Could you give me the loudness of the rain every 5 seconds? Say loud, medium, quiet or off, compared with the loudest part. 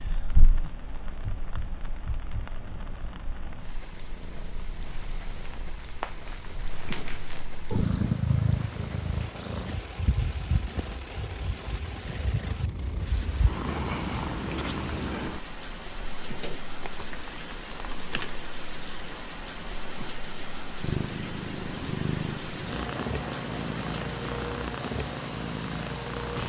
medium, medium, medium, loud, loud, loud.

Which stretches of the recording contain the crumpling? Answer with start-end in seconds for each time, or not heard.
5.4-7.5, 16.4-18.4.